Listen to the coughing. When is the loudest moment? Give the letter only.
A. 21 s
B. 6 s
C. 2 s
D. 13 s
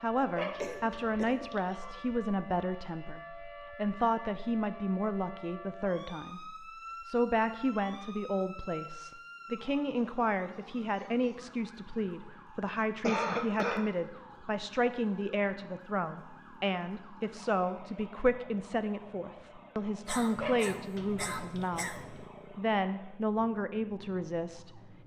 D.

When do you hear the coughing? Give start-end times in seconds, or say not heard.
0.6-1.4, 13.0-13.9, 20.1-22.0.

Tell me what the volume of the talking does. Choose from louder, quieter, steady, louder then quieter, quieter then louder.
steady.